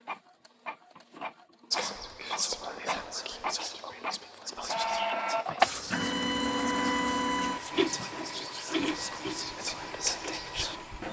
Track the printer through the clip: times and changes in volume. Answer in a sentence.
The printer can be heard from 0.0 to 11.0 s, getting louder then quieter.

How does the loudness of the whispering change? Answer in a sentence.
The volume of the whispering goes down, then up.